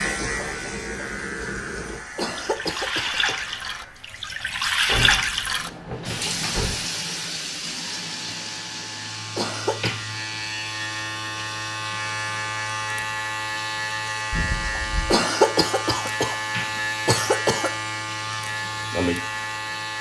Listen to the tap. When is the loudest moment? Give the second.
5 s.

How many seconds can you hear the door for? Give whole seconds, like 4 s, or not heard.
3 s.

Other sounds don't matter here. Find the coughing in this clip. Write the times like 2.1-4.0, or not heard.
2.1-3.4, 9.3-9.9, 15.1-17.7.